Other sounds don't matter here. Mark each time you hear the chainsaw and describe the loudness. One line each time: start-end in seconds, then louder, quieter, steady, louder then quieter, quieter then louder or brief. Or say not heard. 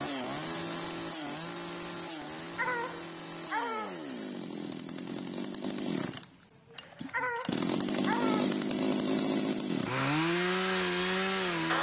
0.0-11.7 louder.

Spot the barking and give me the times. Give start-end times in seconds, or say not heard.
2.4-4.1, 6.8-8.6.